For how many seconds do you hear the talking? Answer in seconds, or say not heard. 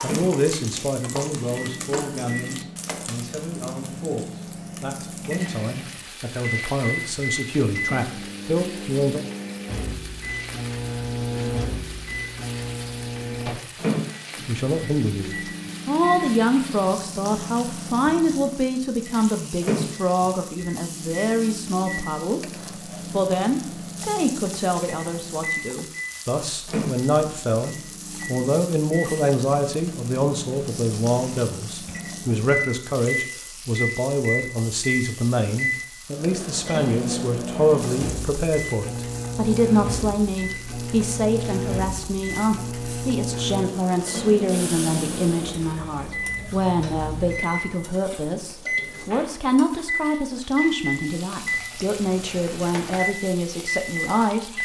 49 s.